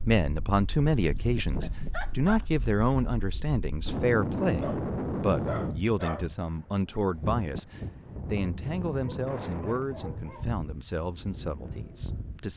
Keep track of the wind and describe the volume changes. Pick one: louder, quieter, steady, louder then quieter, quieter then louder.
louder then quieter.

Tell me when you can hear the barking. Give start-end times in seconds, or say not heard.
0.9-2.5, 4.6-6.3, 8.9-10.5.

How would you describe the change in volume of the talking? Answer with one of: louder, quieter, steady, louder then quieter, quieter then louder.
quieter.